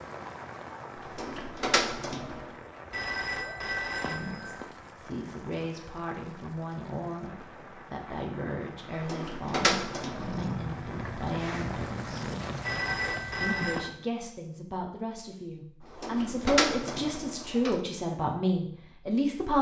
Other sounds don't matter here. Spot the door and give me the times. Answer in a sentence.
The door can be heard from 0.9 to 2.5 s, from 8.9 to 10.4 s and from 15.8 to 17.8 s.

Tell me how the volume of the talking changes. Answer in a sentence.
The volume of the talking goes up.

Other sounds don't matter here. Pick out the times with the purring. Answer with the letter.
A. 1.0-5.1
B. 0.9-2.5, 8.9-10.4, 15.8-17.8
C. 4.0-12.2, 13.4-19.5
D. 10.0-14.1
D.